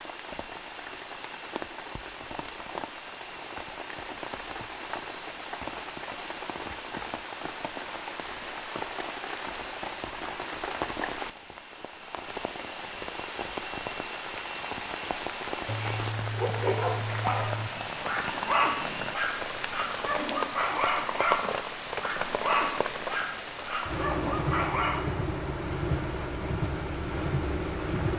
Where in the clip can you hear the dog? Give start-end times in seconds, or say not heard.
15.5-25.1.